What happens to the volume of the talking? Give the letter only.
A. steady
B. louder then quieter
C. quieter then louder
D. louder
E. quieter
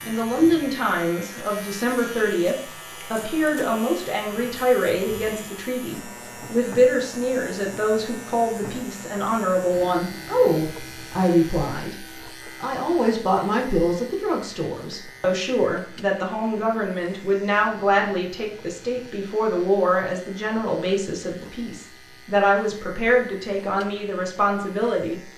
A.